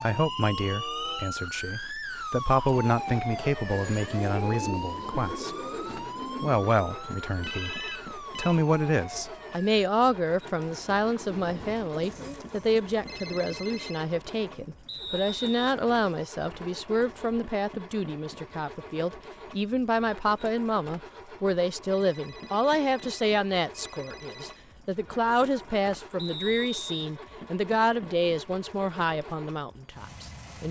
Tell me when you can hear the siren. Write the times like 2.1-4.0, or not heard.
0.0-9.9.